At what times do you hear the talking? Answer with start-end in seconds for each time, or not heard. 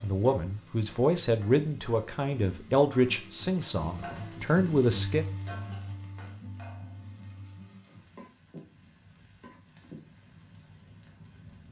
0.0-5.2.